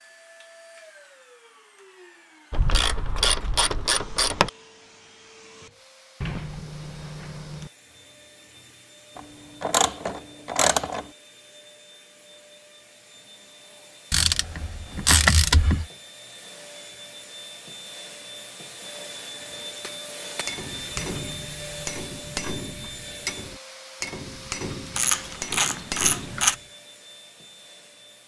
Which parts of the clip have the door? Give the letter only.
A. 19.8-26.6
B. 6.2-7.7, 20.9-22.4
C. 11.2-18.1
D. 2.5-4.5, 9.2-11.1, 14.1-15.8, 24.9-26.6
B.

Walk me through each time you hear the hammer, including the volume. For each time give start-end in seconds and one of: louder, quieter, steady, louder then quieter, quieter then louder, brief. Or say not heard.
19.8-26.6 steady.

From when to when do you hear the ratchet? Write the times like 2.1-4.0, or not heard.
2.5-4.5, 9.2-11.1, 14.1-15.8, 24.9-26.6.